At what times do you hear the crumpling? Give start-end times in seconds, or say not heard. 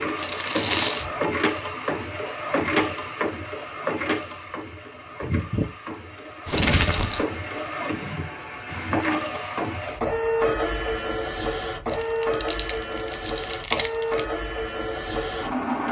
0.1-1.1, 6.5-7.2, 11.8-14.2.